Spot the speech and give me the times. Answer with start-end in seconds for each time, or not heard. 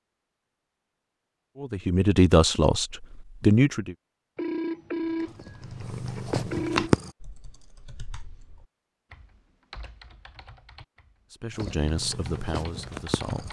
1.6-4.0, 11.4-13.4.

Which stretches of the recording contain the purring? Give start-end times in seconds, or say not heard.
5.2-7.1, 11.5-13.4.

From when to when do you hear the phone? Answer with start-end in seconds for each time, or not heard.
4.3-7.0.